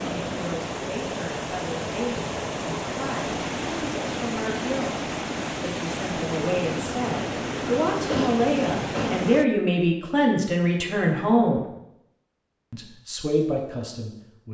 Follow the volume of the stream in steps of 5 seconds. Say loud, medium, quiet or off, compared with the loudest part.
loud, loud, off.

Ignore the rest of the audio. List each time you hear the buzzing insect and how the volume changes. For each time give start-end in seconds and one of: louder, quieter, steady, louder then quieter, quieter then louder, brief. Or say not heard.
not heard.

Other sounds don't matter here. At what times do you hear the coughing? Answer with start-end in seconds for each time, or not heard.
8.1-9.3.